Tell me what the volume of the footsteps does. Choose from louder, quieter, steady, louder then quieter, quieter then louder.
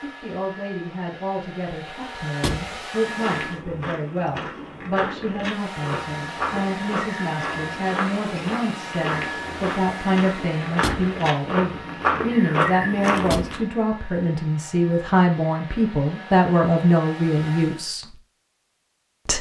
louder.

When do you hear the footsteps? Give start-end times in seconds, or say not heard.
3.0-13.6.